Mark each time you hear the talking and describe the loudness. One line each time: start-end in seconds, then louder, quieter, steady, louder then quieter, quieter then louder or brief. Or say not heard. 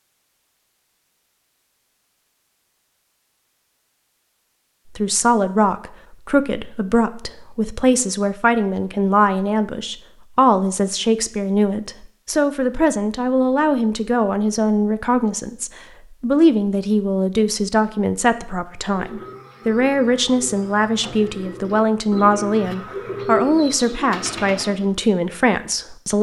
5.0-26.1 steady.